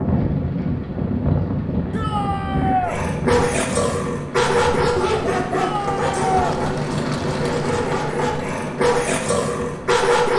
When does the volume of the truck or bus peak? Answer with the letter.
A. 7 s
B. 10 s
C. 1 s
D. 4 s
A.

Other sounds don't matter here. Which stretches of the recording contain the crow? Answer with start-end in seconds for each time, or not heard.
not heard.